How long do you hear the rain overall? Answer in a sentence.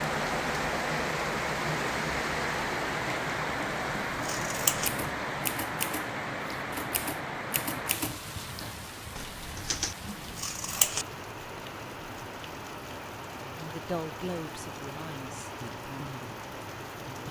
You can hear the rain for 17 seconds altogether.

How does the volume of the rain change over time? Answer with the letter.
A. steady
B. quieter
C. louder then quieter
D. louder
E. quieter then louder
B.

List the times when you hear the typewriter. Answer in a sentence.
You can hear the typewriter from 4.8 to 9.9 s.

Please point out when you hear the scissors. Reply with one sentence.
You can hear the scissors from 4.1 to 4.9 s and from 10.1 to 11.1 s.